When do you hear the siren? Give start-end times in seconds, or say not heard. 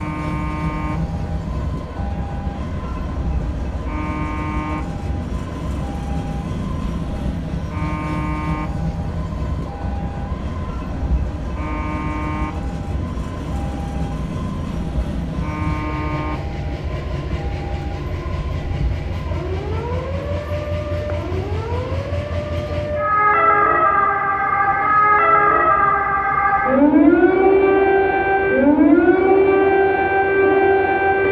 0.0-31.2.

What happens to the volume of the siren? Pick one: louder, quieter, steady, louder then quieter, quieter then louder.
louder.